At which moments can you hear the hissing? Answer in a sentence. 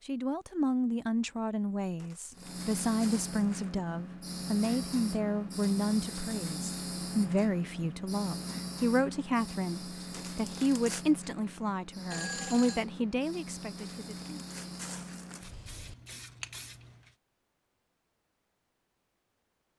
The hissing can be heard from 2.4 to 17.1 s.